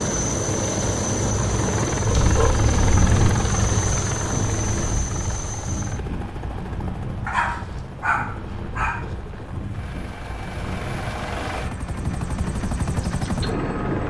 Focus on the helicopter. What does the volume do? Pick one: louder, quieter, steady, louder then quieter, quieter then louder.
quieter then louder.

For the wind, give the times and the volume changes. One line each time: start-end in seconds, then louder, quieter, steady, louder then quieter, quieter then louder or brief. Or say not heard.
0.1-13.8 quieter.